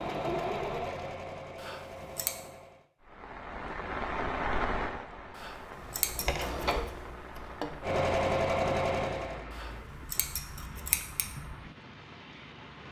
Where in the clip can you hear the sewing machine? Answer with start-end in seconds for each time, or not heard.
0.0-2.9, 5.8-9.4.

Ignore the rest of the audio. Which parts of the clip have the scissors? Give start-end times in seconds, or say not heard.
1.6-2.3, 5.3-6.8, 9.6-11.2.